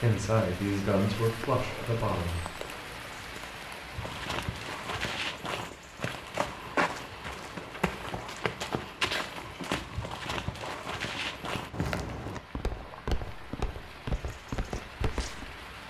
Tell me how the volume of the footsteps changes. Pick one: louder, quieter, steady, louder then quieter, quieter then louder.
steady.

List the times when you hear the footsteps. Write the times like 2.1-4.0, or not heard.
3.9-15.6.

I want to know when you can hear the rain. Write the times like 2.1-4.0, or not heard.
0.0-15.8.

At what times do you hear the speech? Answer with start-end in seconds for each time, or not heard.
0.0-2.5.